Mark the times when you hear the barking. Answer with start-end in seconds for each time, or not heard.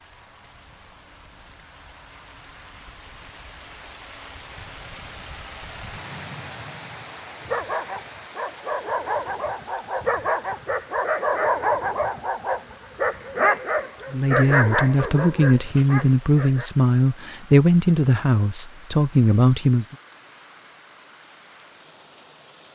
7.5-16.7.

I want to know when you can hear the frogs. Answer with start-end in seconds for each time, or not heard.
not heard.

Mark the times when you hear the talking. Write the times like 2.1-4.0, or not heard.
14.1-19.9.